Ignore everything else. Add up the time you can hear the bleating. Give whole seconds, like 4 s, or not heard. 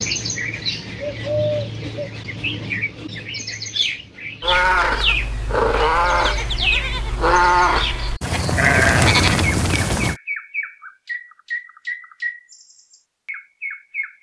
6 s.